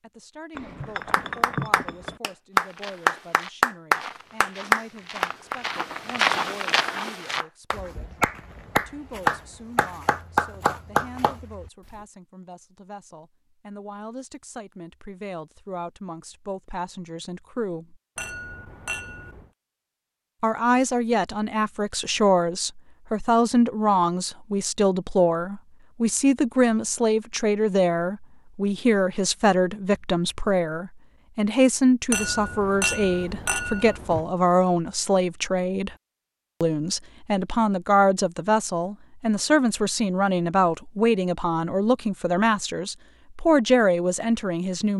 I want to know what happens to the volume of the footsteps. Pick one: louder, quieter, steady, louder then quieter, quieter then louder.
louder then quieter.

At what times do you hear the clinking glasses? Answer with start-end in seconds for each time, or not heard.
0.6-2.2, 18.1-19.4, 32.1-34.2.